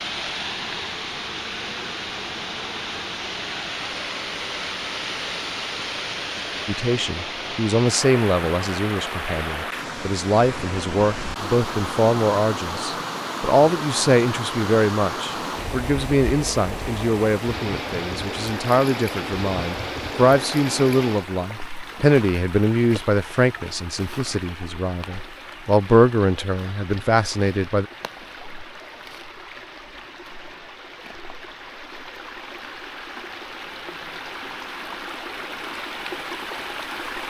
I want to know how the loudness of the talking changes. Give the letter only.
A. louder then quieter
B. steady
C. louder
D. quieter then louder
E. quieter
B.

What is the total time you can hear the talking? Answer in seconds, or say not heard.
21 s.